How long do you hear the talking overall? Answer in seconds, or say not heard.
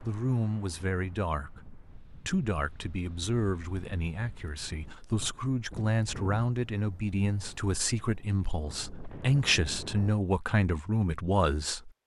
12 s.